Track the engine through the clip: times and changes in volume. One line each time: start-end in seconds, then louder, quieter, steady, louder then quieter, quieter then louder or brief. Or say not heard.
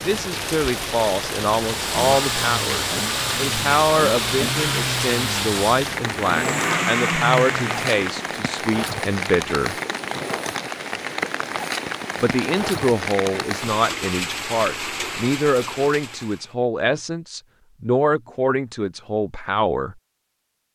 1.6-8.4 steady.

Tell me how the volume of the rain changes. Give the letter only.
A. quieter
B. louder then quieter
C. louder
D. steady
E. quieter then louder
D.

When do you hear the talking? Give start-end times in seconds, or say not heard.
0.0-9.8, 12.2-19.9.